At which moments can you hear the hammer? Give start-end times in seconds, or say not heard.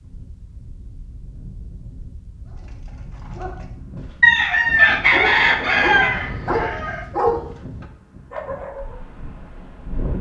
not heard.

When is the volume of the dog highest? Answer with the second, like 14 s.
7 s.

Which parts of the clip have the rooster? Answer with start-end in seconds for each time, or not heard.
4.2-7.0.